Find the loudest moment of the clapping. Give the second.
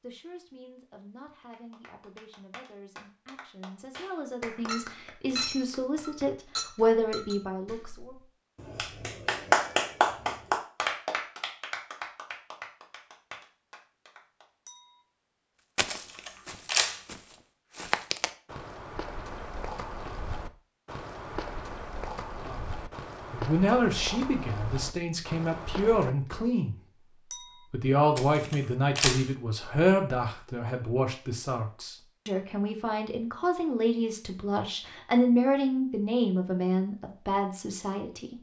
10 s.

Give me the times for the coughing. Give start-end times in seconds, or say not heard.
not heard.